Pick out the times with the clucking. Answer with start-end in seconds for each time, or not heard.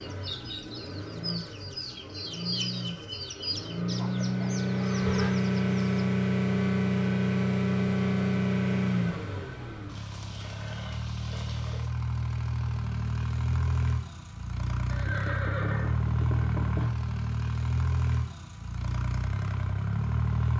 0.0-6.0.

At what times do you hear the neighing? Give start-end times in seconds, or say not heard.
4.8-5.3, 9.8-11.9, 14.9-16.9.